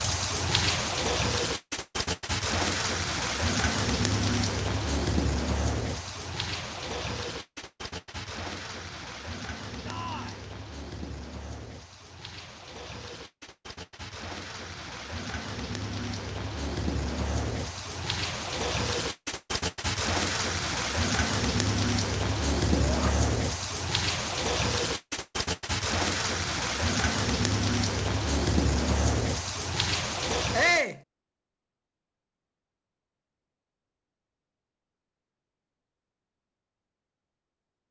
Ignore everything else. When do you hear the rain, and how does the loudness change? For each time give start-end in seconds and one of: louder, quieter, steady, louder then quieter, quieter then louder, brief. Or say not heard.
0.0-30.9 quieter then louder.